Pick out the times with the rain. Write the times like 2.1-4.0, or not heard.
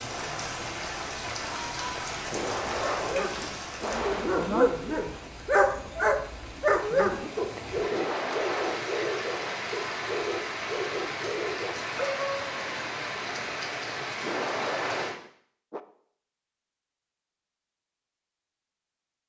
0.0-15.2.